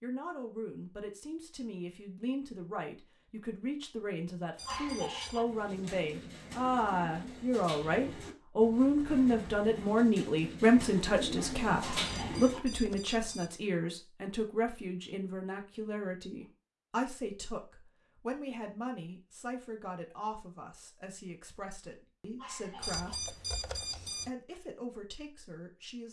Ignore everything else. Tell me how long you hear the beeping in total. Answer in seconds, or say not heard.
4 s.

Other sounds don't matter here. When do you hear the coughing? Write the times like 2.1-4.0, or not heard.
4.7-5.5, 11.8-12.7, 22.4-23.2.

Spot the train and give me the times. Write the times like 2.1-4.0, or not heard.
not heard.